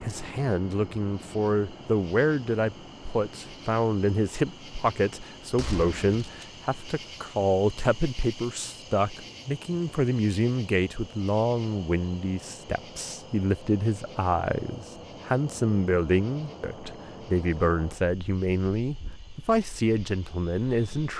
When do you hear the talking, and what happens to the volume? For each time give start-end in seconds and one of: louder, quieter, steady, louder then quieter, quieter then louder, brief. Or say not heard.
0.0-21.1 steady.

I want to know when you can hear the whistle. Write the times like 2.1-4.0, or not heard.
not heard.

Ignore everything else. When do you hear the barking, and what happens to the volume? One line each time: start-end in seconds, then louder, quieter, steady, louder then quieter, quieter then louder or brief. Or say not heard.
not heard.